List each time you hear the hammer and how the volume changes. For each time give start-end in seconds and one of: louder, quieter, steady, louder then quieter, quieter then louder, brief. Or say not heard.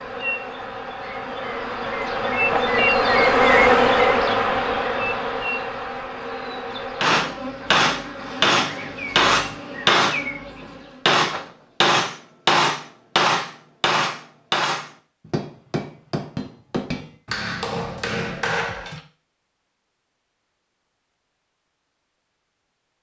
7.0-19.0 quieter.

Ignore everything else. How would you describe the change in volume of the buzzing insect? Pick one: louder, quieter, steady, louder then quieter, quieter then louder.
louder then quieter.